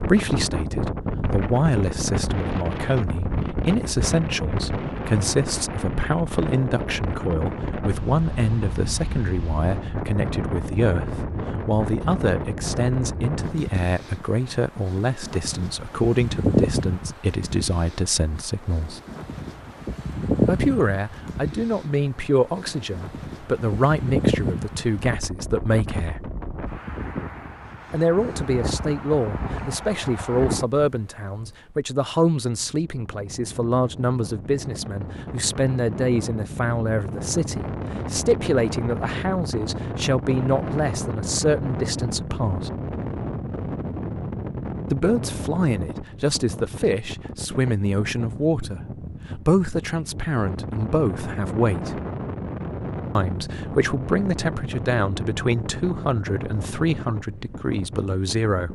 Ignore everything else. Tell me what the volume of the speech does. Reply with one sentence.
The volume of the speech stays about the same.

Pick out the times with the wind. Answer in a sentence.
You can hear the wind from 0.0 to 58.7 s.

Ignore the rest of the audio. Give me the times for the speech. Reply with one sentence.
You can hear the speech from 0.0 to 19.0 s, from 20.4 to 26.3 s, from 27.9 to 42.7 s, from 44.9 to 52.0 s and from 53.1 to 58.7 s.